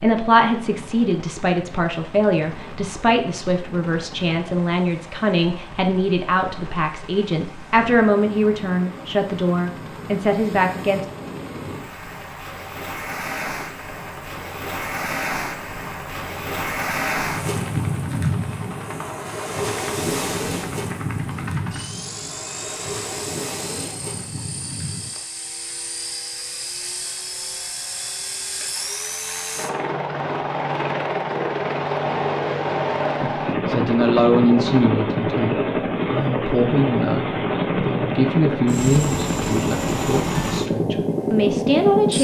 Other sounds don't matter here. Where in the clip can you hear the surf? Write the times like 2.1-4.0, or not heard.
0.1-25.1.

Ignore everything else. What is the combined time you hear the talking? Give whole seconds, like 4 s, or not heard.
20 s.